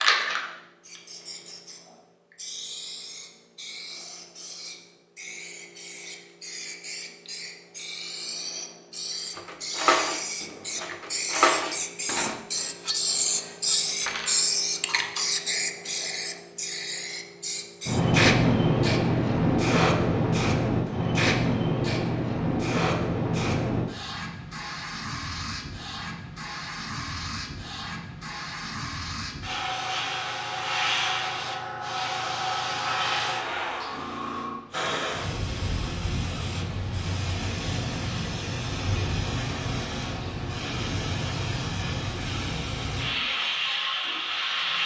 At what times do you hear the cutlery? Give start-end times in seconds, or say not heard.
9.3-15.4.